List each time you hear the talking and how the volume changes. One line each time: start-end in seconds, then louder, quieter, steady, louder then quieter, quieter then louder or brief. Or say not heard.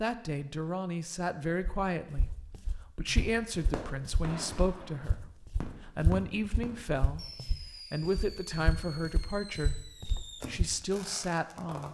0.0-11.8 steady.